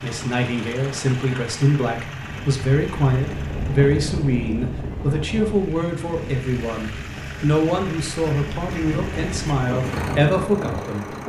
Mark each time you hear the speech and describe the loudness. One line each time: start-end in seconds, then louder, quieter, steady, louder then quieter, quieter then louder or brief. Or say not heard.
0.0-11.2 steady.